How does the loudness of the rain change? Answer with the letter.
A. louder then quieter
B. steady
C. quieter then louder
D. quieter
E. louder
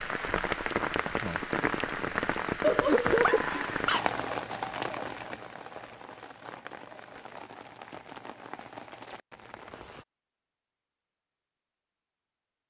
D.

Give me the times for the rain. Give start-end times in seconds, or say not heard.
0.0-10.1.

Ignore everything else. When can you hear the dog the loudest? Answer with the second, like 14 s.
3 s.